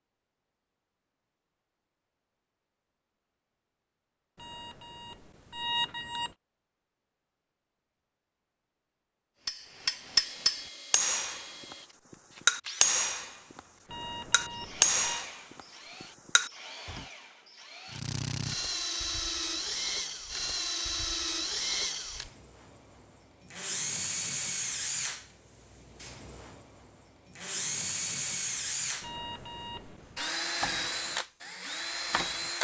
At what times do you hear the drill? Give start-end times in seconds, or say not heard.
10.1-32.5.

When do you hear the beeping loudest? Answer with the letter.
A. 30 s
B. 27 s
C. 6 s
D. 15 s
C.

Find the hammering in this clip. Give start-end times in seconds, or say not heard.
9.4-11.8, 12.4-13.6, 14.3-17.1.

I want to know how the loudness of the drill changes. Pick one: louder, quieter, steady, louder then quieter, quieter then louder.
louder.